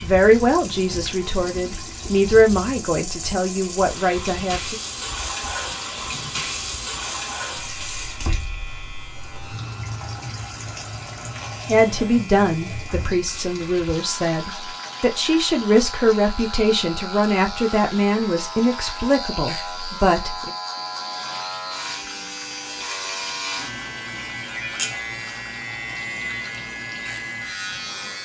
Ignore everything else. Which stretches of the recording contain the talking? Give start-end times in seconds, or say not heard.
0.0-4.8, 11.7-20.5.